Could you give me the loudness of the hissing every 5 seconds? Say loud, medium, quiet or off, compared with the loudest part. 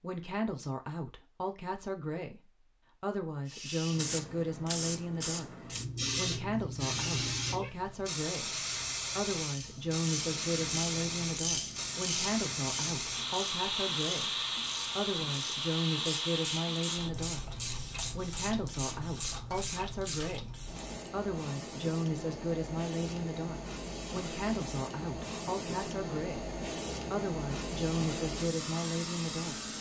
loud, loud, loud, loud, medium, loud.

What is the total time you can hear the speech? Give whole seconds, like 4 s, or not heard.
29 s.